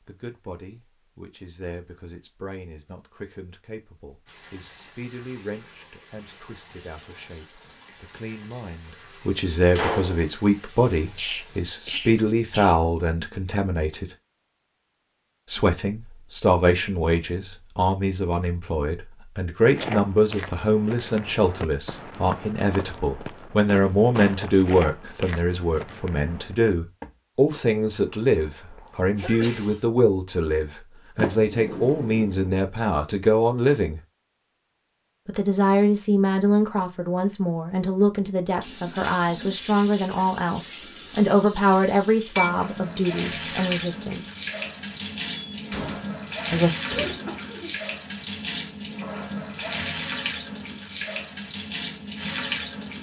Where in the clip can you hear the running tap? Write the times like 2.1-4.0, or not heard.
4.2-12.3, 38.6-52.9.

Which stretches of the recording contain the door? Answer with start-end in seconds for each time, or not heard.
9.5-10.2, 31.1-32.5, 45.5-47.3.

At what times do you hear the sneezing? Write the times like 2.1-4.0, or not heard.
11.2-12.8, 29.1-29.8, 47.0-47.8.